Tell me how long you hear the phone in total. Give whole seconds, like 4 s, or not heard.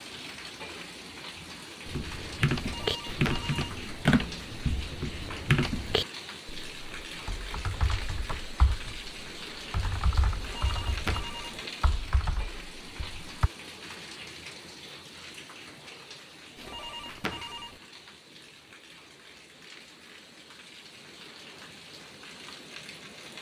4 s.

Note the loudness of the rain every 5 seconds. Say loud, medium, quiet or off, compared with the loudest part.
loud, loud, loud, medium, medium.